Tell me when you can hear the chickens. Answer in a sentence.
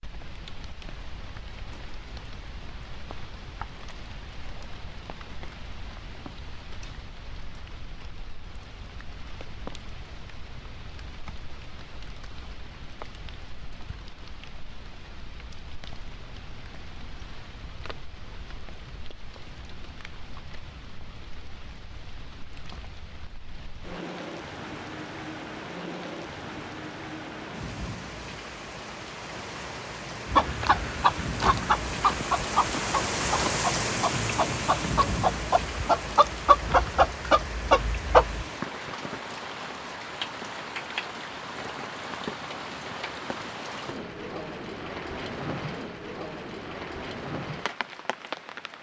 The chickens can be heard from 30.2 to 38.5 s.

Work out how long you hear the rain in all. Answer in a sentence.
You can hear the rain for 49 seconds altogether.